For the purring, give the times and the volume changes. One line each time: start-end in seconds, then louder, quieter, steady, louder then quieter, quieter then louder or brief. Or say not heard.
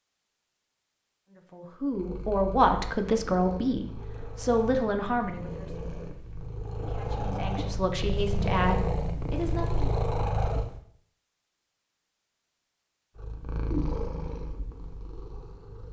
1.9-10.8 louder
13.2-15.8 brief.